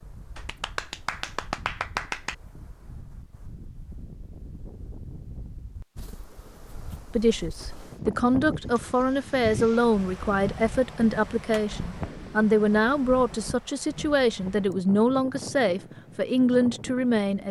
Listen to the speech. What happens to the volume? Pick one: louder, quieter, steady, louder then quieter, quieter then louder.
steady.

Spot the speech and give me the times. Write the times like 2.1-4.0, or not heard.
7.2-17.4.